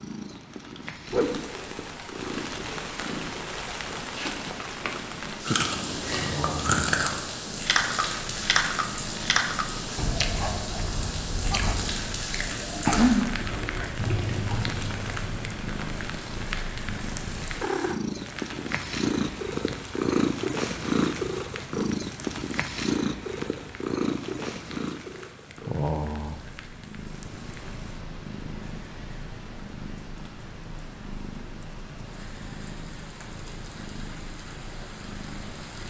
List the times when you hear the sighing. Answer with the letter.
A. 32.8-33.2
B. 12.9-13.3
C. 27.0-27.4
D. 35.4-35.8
B.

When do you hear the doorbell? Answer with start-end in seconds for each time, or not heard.
not heard.